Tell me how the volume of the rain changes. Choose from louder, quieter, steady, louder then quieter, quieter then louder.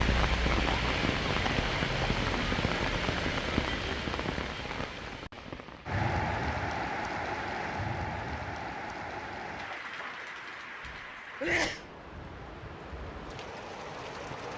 quieter.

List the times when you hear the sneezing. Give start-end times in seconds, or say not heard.
10.8-11.8.